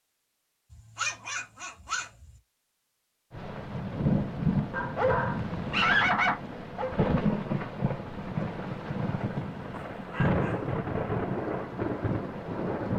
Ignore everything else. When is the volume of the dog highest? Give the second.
6 s.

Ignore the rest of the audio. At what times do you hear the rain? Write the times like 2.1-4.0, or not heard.
3.3-12.9.